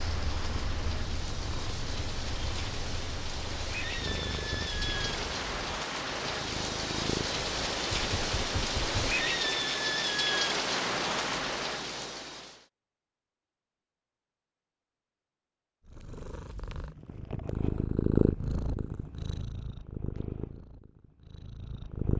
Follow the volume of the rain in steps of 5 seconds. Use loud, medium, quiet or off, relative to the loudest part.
medium, loud, loud, off, off.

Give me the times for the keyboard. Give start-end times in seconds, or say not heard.
7.9-9.2.